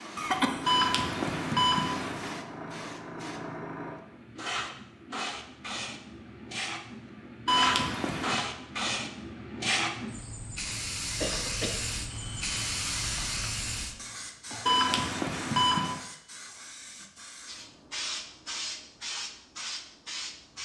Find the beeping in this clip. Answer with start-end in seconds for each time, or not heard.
0.7-2.4, 7.5-8.4, 14.7-16.0.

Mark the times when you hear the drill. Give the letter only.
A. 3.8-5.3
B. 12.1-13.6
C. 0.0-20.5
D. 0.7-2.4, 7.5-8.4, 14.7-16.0
B.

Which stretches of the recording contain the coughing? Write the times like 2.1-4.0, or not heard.
0.1-0.8, 11.2-11.8, 13.9-15.1.